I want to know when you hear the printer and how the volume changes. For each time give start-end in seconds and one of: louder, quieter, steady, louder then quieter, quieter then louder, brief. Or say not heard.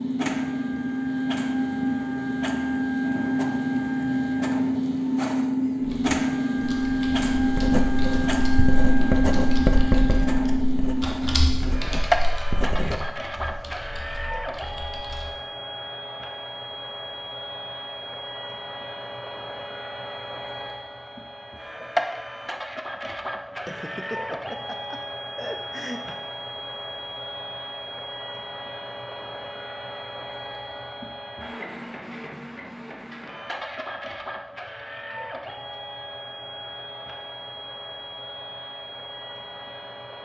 0.0-40.2 quieter.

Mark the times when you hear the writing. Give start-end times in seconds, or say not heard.
7.3-13.2.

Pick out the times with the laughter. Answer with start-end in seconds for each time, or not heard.
23.6-26.1.